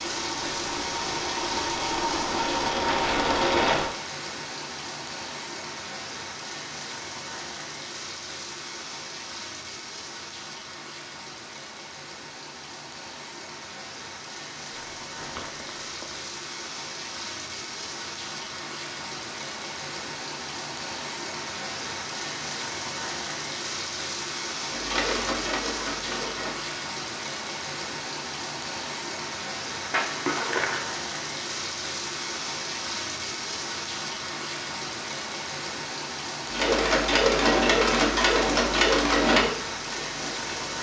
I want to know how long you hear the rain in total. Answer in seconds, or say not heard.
41 s.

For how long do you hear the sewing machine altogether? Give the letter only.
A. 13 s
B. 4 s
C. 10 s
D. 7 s
C.